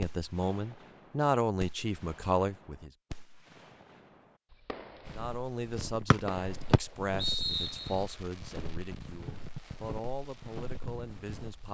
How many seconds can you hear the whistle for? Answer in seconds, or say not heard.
2 s.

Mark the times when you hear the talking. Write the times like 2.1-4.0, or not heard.
0.0-2.9, 5.2-11.6.